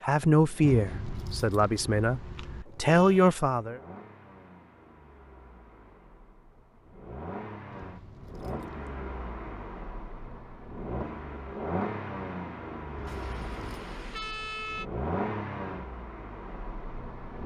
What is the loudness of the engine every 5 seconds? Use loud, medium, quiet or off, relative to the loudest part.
quiet, medium, loud, loud.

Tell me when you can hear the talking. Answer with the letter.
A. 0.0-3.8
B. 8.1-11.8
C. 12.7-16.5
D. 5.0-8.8
A.